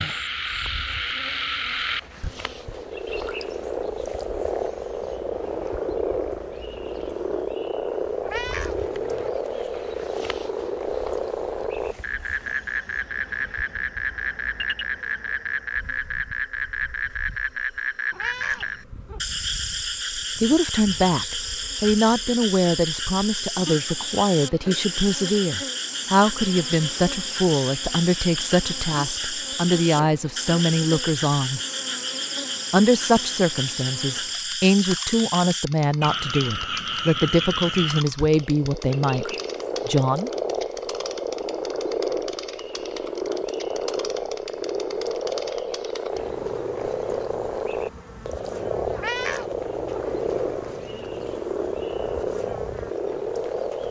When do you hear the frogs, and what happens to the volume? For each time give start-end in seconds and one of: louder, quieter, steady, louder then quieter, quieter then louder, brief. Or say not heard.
0.0-53.8 steady.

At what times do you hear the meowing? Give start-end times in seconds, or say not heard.
8.2-9.3, 18.1-19.2, 49.0-50.0.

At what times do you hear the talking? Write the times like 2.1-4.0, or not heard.
20.4-31.6, 32.7-40.3.